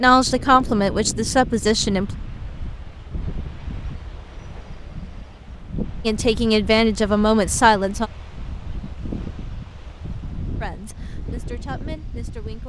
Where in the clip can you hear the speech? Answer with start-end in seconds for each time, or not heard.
0.0-2.1, 6.0-8.1, 10.6-12.6.